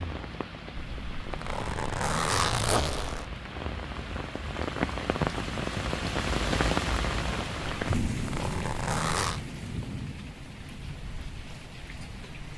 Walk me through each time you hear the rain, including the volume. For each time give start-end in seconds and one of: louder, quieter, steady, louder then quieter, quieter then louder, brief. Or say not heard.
0.0-12.5 louder then quieter.